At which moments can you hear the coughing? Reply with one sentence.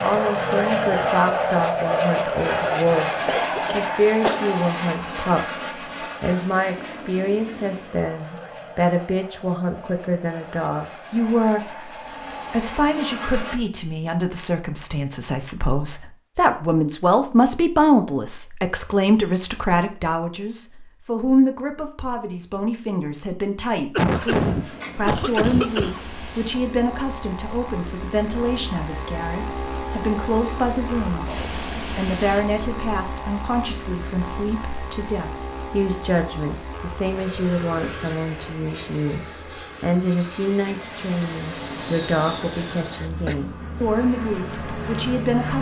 The coughing can be heard from 3.2 to 4.5 s, from 23.9 to 26.1 s and from 42.4 to 43.4 s.